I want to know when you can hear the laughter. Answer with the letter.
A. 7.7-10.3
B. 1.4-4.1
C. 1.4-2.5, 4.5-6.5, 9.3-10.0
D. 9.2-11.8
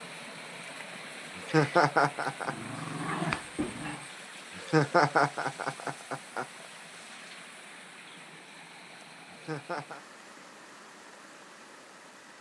C.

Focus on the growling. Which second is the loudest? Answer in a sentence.
The loudest moment of the growling is at 3 seconds.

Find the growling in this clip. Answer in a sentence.
The growling can be heard from 1.4 to 4.1 s.